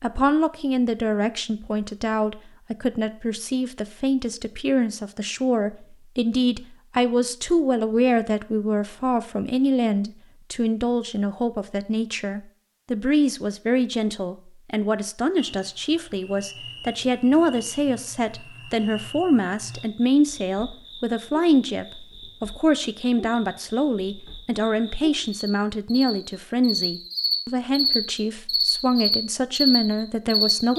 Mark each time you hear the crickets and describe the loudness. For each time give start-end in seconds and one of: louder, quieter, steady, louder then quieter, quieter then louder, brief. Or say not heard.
15.3-30.7 louder.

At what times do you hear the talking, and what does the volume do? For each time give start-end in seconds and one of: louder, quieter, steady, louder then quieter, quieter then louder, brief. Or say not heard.
0.0-30.7 steady.